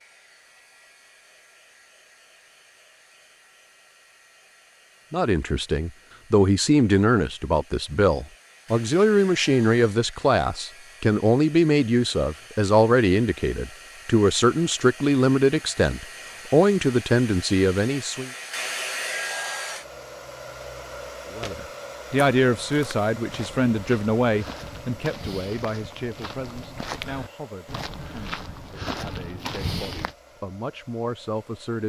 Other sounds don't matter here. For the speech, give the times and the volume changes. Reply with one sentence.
You can hear the speech from 5.1 to 18.3 s, at a steady volume; and from 21.3 to 31.8 s, getting quieter then louder.